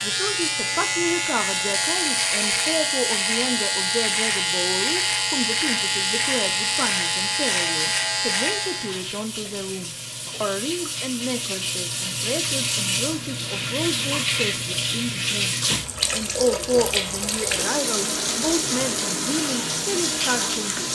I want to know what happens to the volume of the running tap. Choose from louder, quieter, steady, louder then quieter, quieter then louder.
louder.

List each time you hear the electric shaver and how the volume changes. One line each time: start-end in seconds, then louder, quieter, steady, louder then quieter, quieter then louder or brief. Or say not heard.
0.0-9.1 steady.